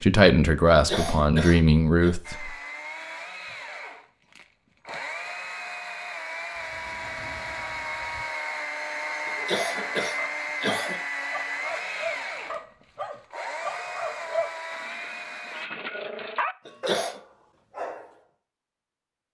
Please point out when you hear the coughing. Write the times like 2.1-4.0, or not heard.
0.7-2.1, 9.2-11.0, 16.6-17.2.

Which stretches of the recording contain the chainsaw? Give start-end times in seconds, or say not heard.
2.2-15.7.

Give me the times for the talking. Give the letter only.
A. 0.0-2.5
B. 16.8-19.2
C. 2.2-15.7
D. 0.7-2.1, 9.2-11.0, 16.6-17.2
A.